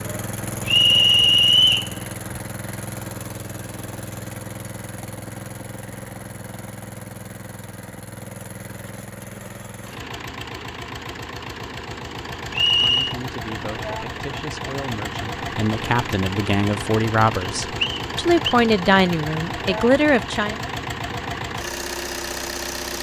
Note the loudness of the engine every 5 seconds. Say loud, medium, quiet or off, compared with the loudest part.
loud, medium, loud, loud, loud.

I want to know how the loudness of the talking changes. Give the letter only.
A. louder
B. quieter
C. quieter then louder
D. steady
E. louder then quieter
A.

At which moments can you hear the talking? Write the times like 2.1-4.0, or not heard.
12.7-20.6.